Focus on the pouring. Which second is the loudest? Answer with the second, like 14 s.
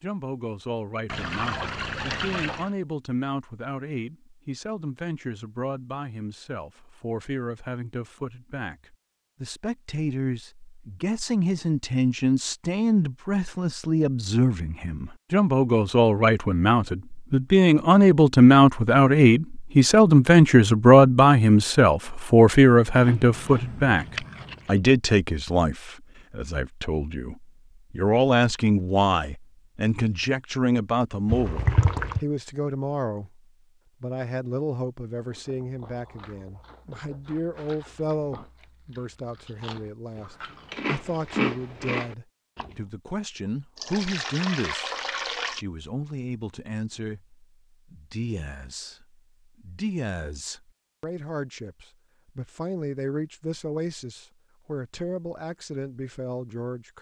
32 s.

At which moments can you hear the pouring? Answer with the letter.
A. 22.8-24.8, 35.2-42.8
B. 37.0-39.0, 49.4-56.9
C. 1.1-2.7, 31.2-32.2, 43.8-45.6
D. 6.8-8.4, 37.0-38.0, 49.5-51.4
C.